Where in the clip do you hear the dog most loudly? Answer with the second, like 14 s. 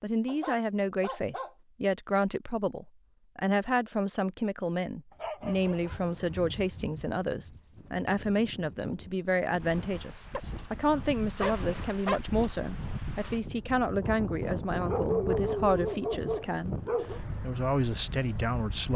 15 s.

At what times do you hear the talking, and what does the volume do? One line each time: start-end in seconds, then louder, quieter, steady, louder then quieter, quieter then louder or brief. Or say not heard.
0.0-18.9 steady.